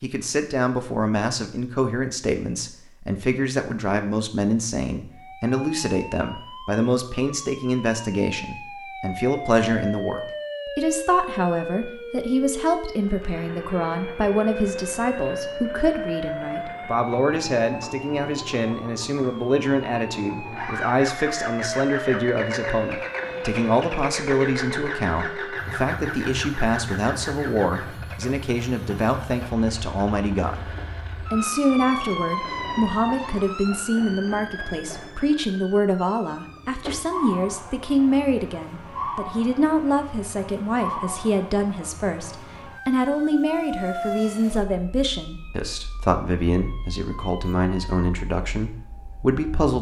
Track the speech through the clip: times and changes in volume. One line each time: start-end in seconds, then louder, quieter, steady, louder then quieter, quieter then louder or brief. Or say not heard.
0.0-49.7 steady.